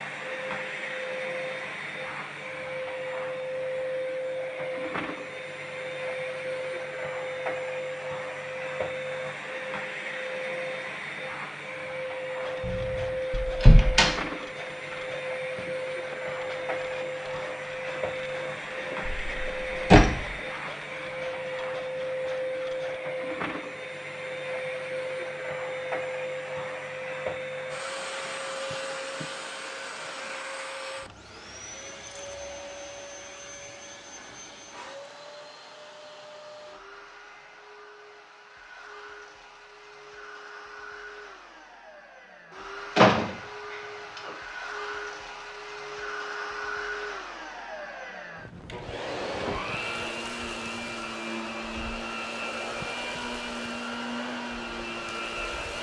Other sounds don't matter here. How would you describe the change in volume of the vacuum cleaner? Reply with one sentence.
The loudness of the vacuum cleaner goes down, then up.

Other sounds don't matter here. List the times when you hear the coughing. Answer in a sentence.
The coughing can't be heard in this clip.